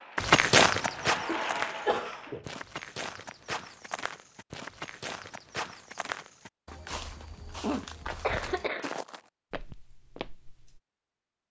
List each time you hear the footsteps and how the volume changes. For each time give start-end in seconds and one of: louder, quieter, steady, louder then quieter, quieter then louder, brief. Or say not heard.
0.1-10.8 quieter.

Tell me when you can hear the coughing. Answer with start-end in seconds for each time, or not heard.
1.0-2.5, 7.6-8.9.